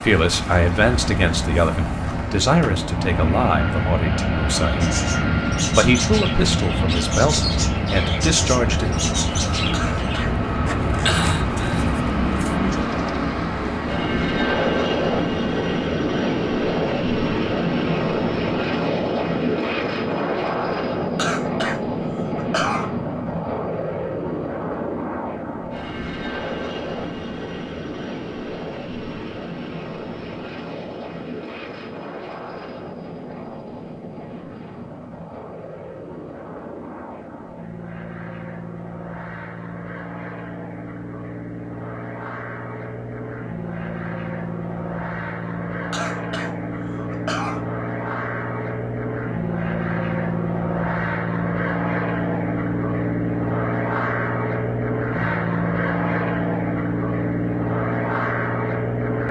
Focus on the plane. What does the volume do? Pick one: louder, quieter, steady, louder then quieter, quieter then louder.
quieter then louder.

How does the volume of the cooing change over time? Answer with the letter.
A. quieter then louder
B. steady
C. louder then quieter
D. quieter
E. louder
B.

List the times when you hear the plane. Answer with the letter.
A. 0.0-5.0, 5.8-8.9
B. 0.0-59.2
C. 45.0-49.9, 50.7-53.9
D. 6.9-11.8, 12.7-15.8
B.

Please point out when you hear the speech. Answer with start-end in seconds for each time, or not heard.
0.0-5.0, 5.8-8.9.